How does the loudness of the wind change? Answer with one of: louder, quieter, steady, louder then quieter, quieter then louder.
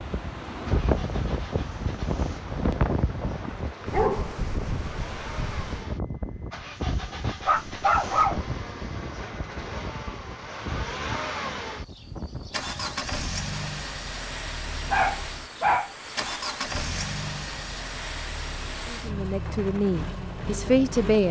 quieter.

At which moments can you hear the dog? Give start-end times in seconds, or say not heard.
3.2-4.3, 7.5-8.4, 14.9-15.9.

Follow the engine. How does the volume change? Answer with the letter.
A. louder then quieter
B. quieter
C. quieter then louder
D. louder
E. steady
D.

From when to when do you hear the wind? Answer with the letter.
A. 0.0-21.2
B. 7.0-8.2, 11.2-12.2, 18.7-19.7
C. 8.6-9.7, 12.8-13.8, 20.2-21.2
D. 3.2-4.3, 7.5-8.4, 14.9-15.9
A.